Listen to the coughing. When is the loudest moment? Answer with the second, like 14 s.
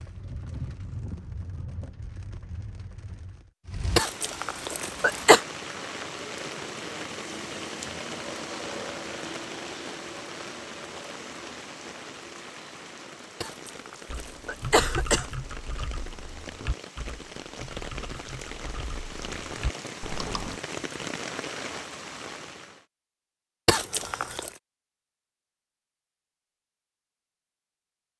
5 s.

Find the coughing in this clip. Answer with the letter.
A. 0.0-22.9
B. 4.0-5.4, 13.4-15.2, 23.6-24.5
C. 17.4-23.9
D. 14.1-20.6
B.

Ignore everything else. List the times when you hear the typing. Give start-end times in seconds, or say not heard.
14.1-20.6.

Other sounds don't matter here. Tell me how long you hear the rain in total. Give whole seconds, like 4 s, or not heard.
23 s.